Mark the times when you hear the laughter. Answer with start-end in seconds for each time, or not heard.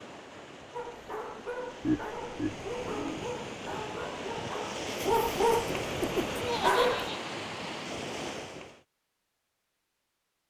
1.8-3.2, 6.3-7.2.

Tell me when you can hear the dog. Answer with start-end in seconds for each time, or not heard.
0.7-7.1.